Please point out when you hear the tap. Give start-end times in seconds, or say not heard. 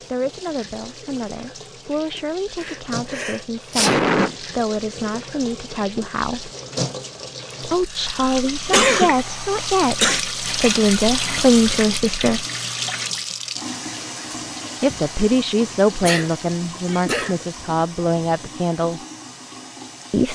0.0-20.3.